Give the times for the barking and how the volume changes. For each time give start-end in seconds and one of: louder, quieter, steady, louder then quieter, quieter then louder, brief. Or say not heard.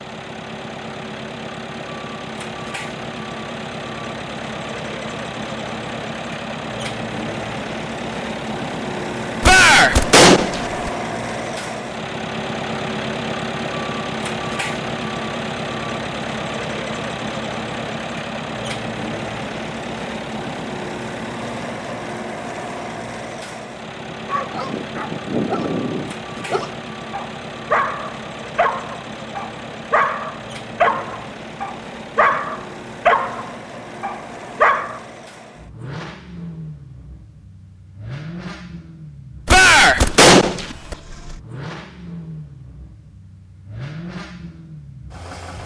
24.1-35.0 louder.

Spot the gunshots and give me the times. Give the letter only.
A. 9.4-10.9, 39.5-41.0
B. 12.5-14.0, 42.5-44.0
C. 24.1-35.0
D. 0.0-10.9
A.